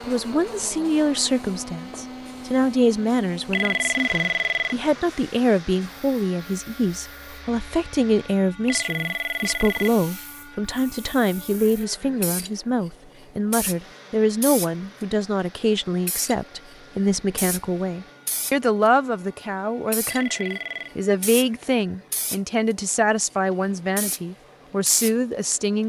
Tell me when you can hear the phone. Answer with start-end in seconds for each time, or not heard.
3.5-4.8, 8.7-9.9, 20.1-20.9.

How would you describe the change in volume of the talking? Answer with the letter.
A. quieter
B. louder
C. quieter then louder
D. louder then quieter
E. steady
E.